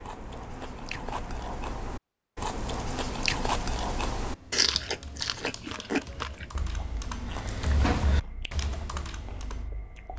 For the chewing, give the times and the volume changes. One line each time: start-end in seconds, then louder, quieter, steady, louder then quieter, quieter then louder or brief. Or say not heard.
0.0-10.1 louder then quieter.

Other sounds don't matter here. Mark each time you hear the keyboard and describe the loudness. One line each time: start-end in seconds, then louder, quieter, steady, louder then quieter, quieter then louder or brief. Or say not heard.
4.2-9.7 louder then quieter.